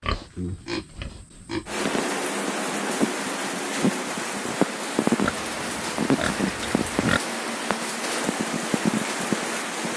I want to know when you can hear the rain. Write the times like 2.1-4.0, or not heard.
1.6-9.9.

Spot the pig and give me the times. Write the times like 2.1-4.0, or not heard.
0.0-1.9, 5.2-7.2.